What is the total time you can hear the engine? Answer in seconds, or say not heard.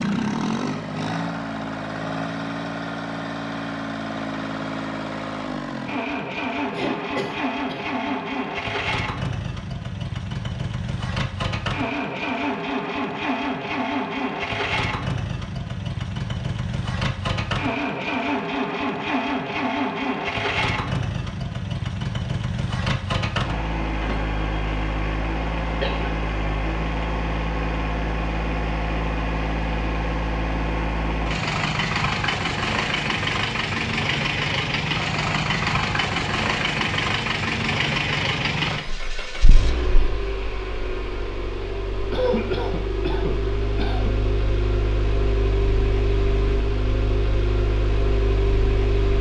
49 s.